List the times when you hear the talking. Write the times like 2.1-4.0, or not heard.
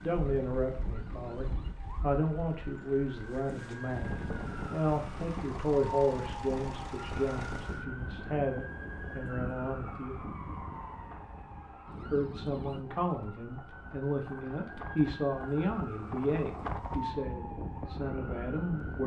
0.0-10.2, 12.0-19.0.